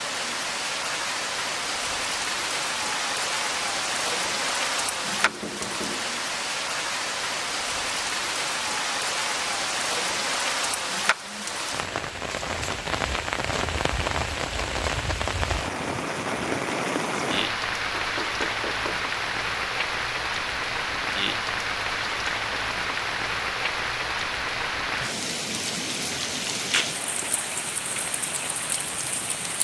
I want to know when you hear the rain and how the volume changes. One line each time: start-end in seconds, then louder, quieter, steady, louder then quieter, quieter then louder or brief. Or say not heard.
0.0-29.5 steady.